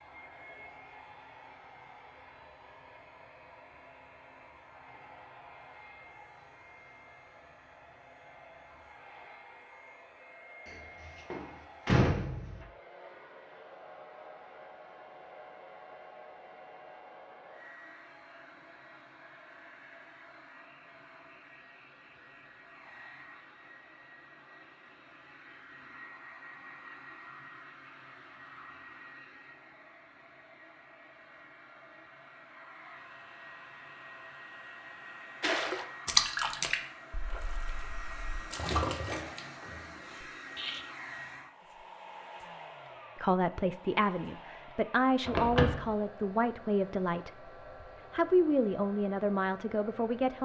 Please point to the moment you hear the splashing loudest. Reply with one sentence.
The volume of the splashing peaks at 36 seconds.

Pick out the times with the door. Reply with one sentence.
The door can be heard from 10.7 to 12.6 s and from 45.2 to 45.9 s.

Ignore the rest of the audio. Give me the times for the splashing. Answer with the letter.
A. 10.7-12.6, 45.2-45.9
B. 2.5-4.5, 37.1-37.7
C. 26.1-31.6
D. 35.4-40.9
D.